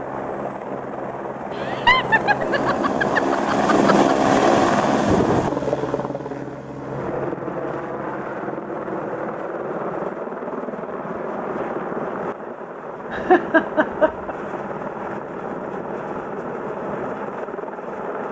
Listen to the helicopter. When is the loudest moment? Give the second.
4 s.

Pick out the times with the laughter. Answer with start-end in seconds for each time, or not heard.
1.6-4.0, 13.1-14.3.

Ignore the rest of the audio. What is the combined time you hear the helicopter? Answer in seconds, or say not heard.
18 s.